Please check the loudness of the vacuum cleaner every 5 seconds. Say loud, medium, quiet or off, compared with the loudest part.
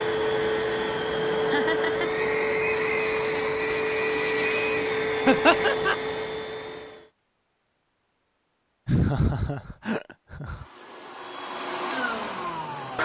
loud, loud, medium.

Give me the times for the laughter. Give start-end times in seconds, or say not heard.
1.4-2.2, 5.2-6.0, 8.8-10.7.